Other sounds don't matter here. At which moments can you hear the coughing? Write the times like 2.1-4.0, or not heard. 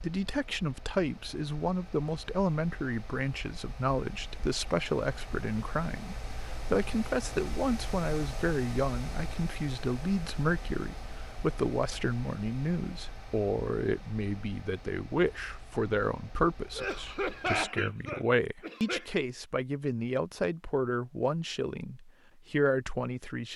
16.7-19.1.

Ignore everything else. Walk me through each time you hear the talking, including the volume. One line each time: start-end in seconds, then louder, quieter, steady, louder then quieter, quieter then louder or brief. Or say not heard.
0.0-23.5 steady.